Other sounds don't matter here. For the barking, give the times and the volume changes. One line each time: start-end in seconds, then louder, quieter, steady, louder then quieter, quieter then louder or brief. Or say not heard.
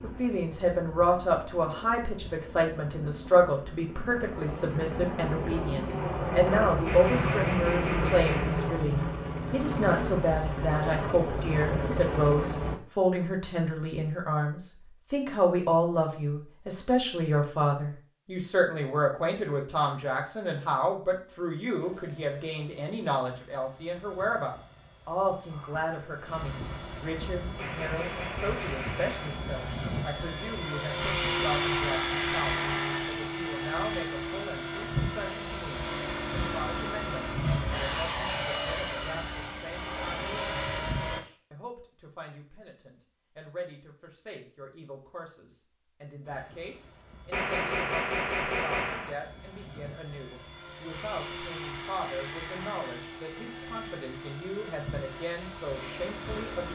not heard.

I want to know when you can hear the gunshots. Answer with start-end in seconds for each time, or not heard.
6.8-8.7, 27.6-29.4, 47.3-49.1.